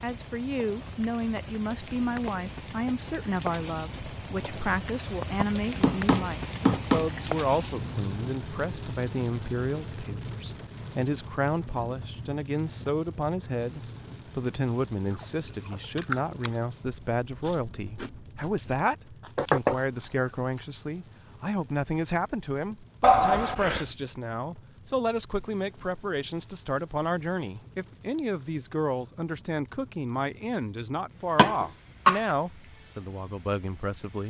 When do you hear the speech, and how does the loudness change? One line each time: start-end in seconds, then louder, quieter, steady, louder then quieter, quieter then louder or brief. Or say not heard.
0.0-34.2 steady.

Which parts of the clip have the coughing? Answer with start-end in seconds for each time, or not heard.
31.4-32.2.